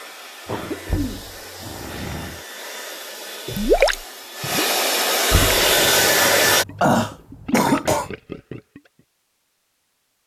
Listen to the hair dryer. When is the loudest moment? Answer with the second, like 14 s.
6 s.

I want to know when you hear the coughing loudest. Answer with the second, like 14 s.
7 s.